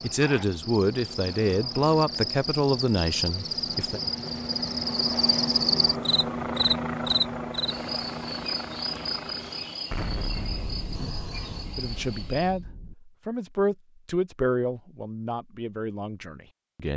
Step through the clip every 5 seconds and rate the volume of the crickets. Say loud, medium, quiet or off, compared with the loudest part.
loud, loud, medium, off.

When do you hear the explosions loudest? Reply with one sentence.
The loudest moment of the explosions is at 10 seconds.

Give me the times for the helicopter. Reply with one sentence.
The helicopter can be heard from 0.0 to 9.9 s.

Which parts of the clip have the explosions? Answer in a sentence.
The explosions can be heard from 9.9 to 12.9 s.